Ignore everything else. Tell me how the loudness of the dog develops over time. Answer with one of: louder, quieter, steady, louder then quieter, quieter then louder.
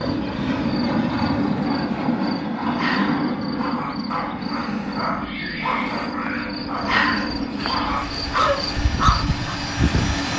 louder.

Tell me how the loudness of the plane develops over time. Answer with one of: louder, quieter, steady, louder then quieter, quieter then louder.
quieter.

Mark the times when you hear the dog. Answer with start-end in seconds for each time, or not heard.
2.6-9.6.